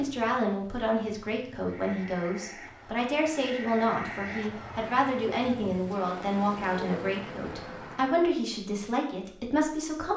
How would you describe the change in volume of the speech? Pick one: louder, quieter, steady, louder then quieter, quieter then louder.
steady.